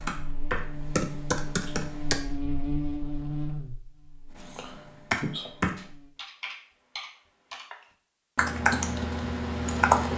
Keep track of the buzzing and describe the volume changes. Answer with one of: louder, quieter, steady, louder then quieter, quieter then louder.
louder then quieter.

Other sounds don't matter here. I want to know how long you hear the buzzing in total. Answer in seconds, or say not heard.
6 s.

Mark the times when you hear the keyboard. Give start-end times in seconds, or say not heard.
0.0-2.1, 4.5-7.8, 8.3-10.1.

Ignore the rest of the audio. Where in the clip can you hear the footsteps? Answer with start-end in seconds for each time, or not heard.
not heard.